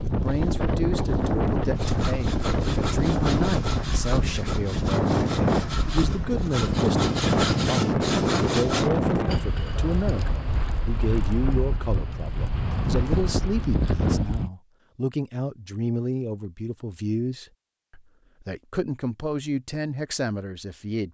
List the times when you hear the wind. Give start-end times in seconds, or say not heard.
0.0-14.5.